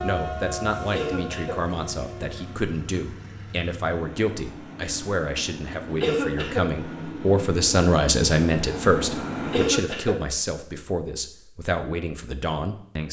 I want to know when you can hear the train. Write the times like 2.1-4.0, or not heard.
0.0-9.8.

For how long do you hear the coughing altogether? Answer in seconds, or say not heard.
2 s.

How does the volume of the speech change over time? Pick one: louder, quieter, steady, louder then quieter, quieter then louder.
louder then quieter.